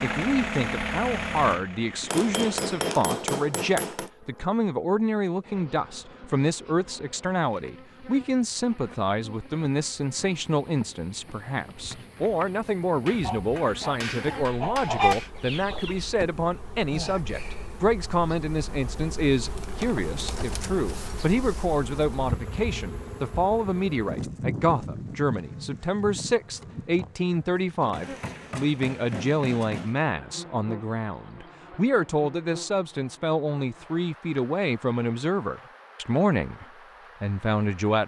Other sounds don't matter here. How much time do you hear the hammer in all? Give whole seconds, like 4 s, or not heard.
6 s.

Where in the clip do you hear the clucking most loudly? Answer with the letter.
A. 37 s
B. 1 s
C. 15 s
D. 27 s
C.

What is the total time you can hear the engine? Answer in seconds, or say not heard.
3 s.